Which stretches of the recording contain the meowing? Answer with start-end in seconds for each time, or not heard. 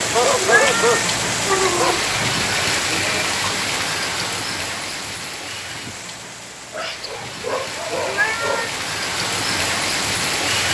0.4-2.0, 8.1-8.8.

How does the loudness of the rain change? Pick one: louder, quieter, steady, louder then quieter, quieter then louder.
quieter then louder.